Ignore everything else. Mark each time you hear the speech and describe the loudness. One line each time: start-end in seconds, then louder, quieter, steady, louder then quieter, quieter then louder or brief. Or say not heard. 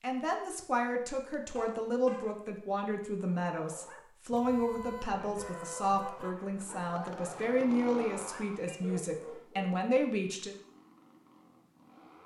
0.0-10.6 steady.